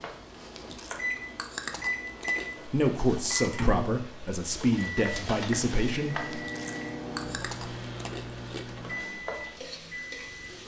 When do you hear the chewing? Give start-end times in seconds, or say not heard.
0.3-2.5, 6.2-8.7.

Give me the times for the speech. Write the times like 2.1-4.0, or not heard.
2.6-6.4.